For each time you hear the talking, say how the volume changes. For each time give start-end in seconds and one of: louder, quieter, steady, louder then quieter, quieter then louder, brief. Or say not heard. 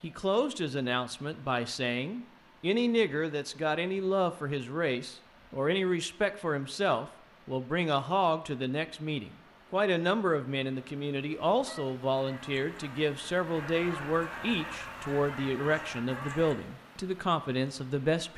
0.0-18.3 steady.